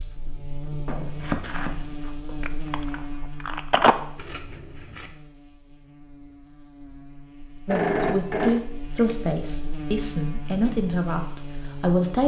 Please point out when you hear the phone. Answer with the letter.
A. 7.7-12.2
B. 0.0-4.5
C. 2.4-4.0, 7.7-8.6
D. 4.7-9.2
C.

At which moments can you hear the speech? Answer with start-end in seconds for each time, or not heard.
7.7-12.2.